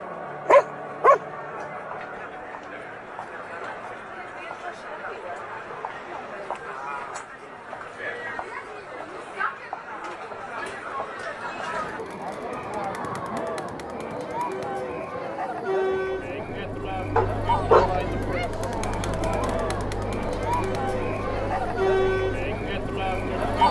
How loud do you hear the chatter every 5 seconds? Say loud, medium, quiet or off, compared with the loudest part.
medium, medium, medium, loud, loud.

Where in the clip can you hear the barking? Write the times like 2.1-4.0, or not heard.
0.5-1.6, 17.1-17.9.